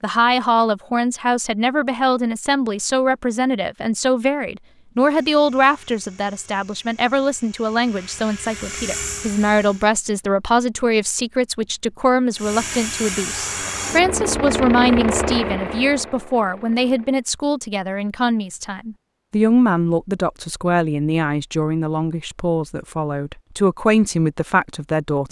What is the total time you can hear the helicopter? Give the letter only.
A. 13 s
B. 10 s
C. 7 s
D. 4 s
B.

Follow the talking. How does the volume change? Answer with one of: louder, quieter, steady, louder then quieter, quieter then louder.
steady.